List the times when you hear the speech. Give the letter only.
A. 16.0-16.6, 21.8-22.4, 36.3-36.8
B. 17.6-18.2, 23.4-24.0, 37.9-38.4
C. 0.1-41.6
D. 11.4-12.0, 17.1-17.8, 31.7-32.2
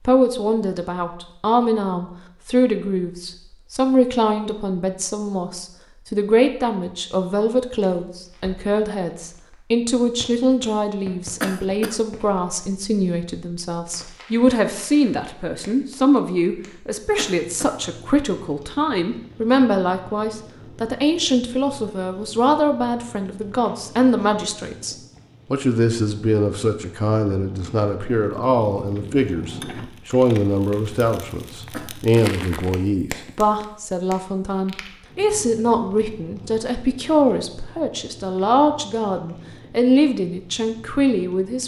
C.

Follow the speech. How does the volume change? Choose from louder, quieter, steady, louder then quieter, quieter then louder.
steady.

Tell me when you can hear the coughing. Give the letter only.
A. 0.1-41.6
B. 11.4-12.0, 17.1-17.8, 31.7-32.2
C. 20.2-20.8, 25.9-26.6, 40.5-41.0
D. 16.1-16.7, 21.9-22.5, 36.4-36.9
B.